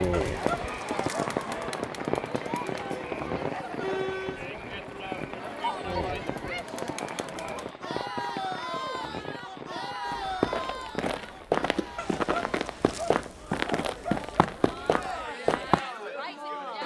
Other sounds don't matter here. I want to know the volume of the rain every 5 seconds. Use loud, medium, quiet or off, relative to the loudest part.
loud, medium, quiet, off.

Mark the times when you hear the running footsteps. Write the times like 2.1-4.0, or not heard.
10.1-15.8.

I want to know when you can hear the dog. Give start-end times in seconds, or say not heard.
0.1-1.6, 11.9-14.4.